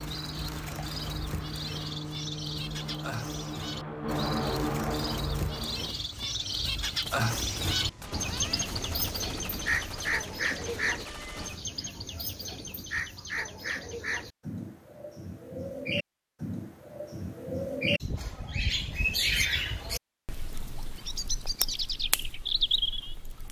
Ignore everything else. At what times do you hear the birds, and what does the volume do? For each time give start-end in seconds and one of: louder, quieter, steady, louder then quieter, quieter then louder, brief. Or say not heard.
0.0-23.4 louder.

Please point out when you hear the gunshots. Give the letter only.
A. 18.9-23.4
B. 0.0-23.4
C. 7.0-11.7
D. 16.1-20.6
C.